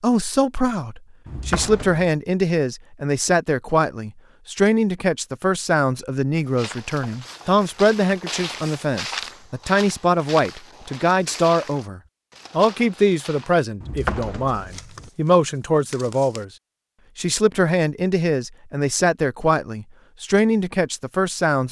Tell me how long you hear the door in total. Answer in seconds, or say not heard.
2 s.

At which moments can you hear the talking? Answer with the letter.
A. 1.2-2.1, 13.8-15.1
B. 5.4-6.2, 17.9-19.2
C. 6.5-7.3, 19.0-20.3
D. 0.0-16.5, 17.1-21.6
D.